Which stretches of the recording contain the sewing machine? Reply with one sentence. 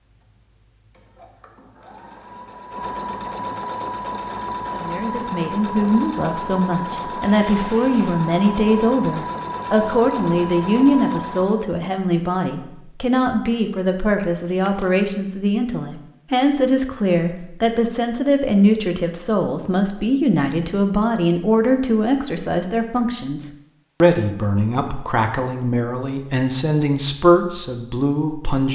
The sewing machine can be heard from 0.0 to 11.8 s.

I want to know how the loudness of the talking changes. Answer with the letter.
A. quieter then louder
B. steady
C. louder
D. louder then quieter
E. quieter
B.